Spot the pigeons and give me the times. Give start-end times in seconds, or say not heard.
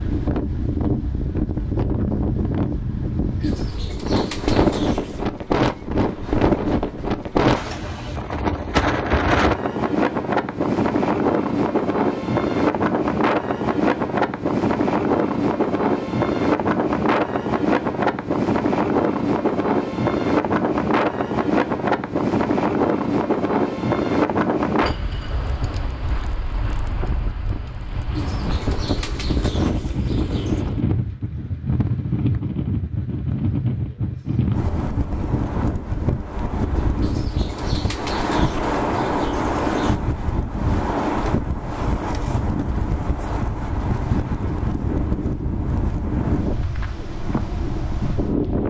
3.4-5.3, 28.1-30.6, 37.0-40.0.